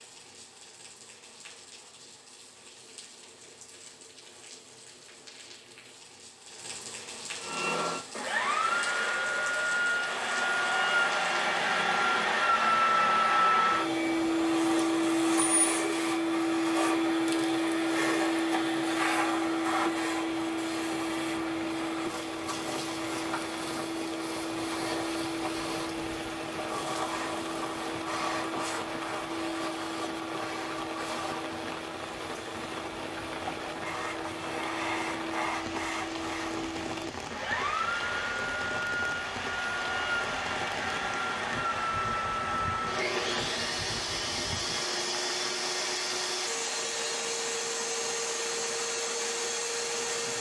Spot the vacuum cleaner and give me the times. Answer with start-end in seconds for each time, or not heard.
7.4-50.3.